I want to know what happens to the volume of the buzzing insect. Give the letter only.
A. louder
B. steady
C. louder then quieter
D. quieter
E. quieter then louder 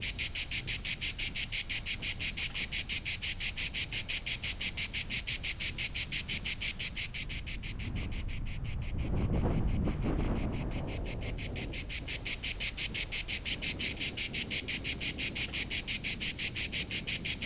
E.